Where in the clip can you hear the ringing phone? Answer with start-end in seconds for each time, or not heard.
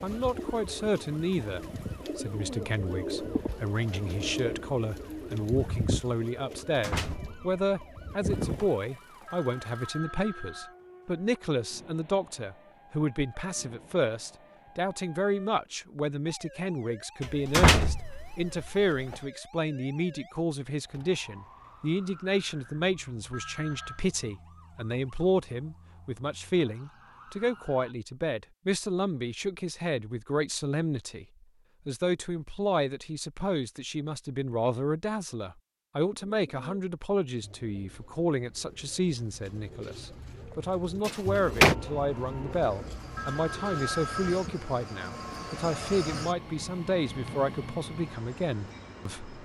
9.2-10.8, 23.3-24.1, 43.1-44.4.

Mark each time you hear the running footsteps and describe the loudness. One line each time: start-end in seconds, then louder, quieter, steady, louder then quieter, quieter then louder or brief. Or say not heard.
not heard.